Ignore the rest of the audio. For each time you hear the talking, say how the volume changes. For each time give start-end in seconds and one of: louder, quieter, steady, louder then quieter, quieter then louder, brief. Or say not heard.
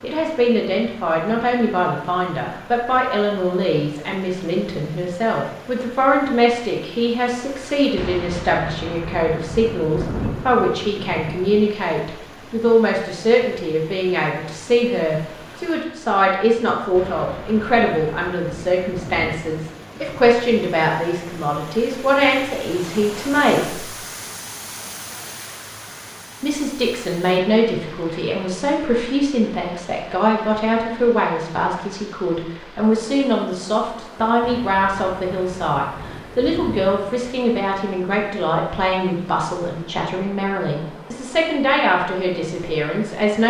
0.0-23.9 steady
26.4-43.4 steady.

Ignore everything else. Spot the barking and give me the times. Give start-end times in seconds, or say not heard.
not heard.